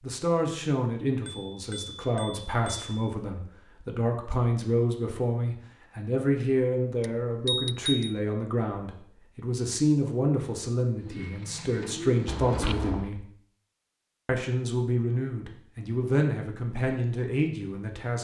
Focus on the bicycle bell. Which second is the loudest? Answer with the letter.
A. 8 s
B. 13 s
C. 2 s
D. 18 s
A.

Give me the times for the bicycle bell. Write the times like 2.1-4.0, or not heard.
1.2-2.9, 7.0-8.2, 12.2-13.1.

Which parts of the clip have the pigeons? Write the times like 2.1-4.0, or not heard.
10.9-13.1.